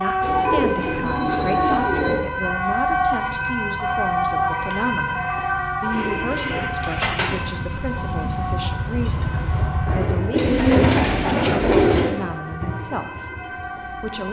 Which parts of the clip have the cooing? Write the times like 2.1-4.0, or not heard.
0.2-2.2, 5.9-7.3, 10.3-12.1.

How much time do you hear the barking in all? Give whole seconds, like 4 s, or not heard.
not heard.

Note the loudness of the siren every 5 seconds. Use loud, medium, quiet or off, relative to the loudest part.
loud, medium, quiet.